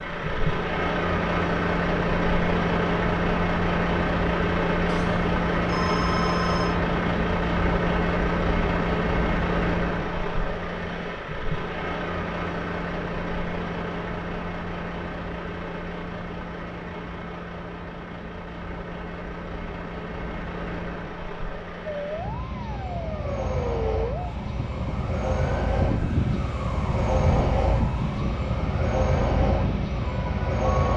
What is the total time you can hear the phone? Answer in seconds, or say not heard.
2 s.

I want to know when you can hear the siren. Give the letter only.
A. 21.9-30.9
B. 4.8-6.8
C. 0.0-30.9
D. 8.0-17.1
A.